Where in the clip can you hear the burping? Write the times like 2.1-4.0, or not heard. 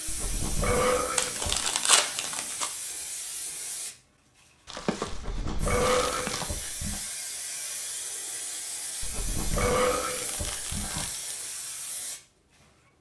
0.1-1.7, 5.1-7.0, 9.0-11.1.